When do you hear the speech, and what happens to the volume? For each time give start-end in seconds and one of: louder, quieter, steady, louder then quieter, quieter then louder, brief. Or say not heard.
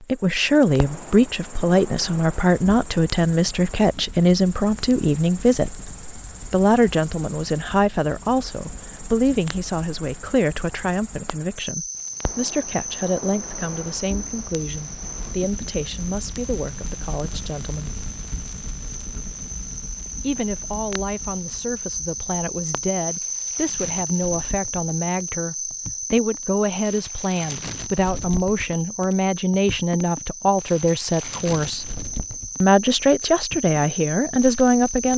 0.1-18.0 quieter
20.2-31.9 louder
32.6-35.1 brief.